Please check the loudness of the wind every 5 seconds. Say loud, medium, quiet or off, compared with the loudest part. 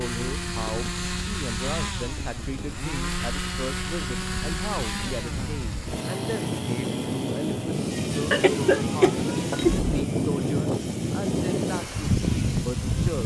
quiet, loud, loud.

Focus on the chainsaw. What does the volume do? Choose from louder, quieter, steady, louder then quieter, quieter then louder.
quieter.